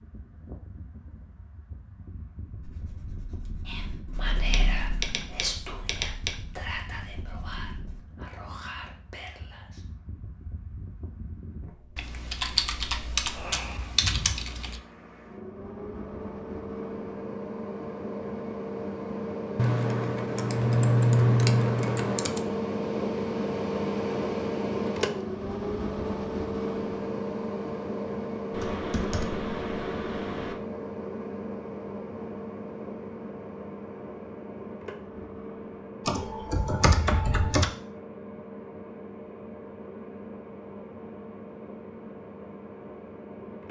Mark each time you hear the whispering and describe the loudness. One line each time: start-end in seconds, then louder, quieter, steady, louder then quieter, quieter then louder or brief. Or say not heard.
3.6-9.8 quieter.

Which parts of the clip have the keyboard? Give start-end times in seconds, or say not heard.
4.5-6.3, 11.9-14.8, 19.6-22.4, 28.5-30.6, 36.0-37.6.